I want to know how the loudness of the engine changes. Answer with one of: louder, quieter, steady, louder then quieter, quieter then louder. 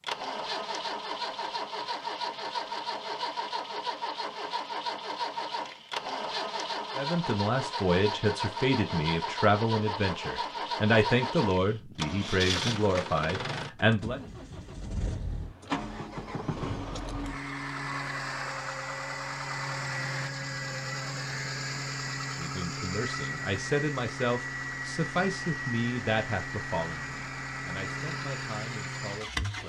steady.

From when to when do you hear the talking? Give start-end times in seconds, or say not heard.
7.0-14.2, 22.4-29.6.